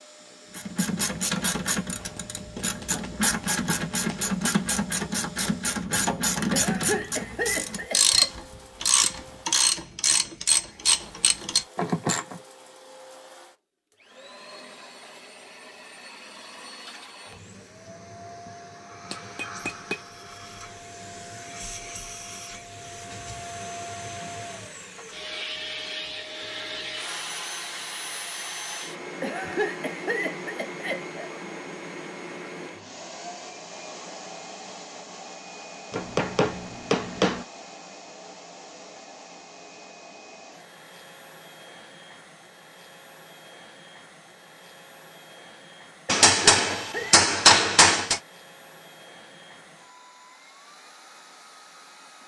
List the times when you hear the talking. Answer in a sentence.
The talking can't be heard in this clip.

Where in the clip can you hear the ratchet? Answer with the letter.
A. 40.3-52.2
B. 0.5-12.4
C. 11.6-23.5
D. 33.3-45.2
B.